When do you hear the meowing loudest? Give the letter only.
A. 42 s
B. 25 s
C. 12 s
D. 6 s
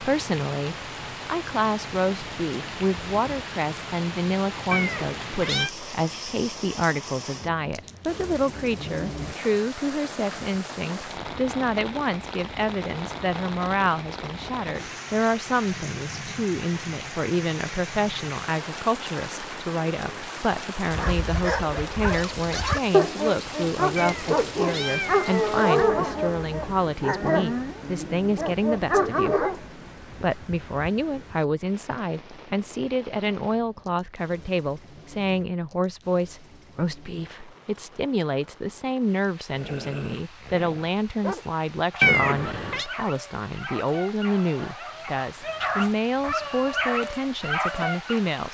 A.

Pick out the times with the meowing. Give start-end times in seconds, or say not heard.
4.7-5.7, 23.9-25.6, 42.0-42.9.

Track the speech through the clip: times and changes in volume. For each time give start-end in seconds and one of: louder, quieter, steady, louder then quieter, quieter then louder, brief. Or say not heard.
0.0-48.4 steady.